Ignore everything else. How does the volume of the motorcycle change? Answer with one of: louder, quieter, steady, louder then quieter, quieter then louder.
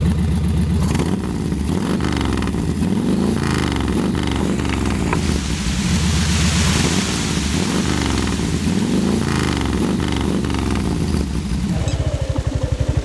steady.